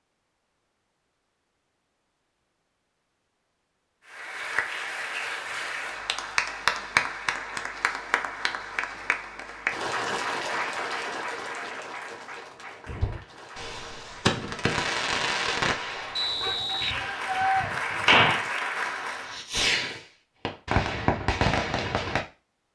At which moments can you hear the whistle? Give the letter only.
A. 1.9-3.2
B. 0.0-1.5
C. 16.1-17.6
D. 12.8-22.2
C.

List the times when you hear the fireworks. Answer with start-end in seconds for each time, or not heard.
12.8-22.2.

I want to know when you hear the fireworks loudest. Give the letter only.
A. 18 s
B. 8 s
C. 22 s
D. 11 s
A.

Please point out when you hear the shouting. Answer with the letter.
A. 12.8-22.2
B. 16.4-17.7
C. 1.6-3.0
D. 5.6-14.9
B.